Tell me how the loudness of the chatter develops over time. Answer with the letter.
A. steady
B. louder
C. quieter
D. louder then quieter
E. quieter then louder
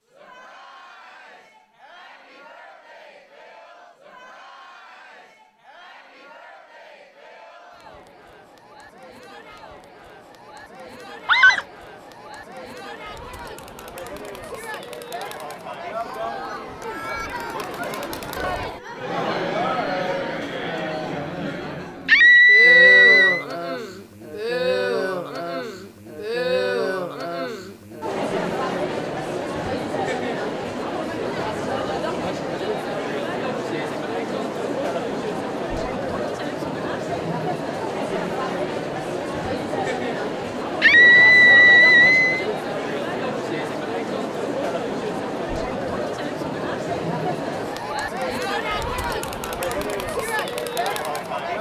B.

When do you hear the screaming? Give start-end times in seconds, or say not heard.
11.2-11.7, 22.1-23.4, 40.8-42.5.